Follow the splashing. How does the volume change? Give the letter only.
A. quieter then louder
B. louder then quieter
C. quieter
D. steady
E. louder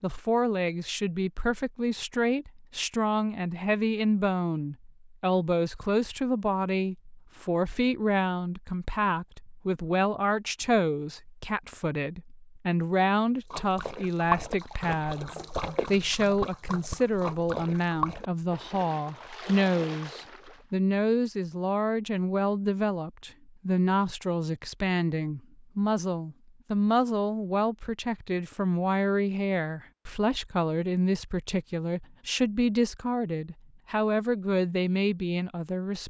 C.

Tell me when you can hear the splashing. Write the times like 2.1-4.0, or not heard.
13.4-20.6.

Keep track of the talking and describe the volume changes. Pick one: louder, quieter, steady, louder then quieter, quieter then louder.
steady.